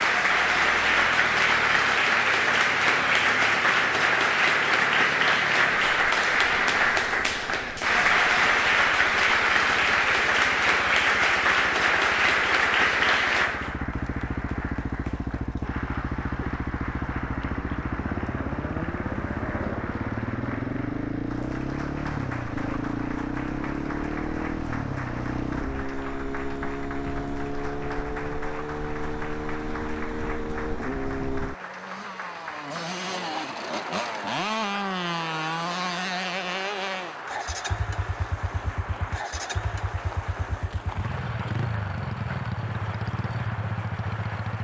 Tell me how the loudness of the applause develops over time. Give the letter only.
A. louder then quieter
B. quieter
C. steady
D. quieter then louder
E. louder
B.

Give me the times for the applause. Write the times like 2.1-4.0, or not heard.
0.0-44.6.